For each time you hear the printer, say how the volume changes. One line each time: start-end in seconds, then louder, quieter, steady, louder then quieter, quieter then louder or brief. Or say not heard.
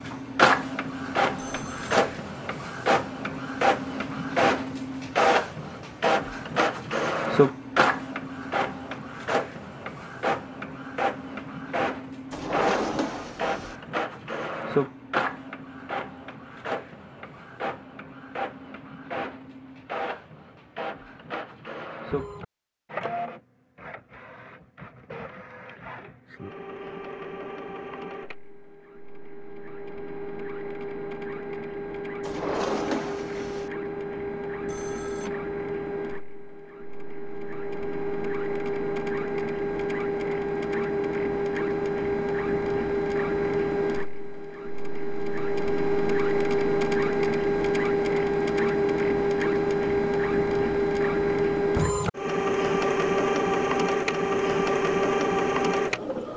0.0-56.3 quieter then louder.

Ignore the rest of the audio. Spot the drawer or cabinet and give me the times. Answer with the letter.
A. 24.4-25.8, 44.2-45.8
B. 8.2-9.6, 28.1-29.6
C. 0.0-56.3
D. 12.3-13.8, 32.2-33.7
D.